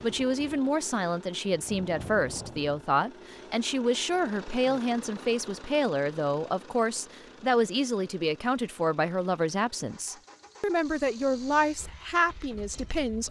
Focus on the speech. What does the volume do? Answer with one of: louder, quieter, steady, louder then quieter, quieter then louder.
steady.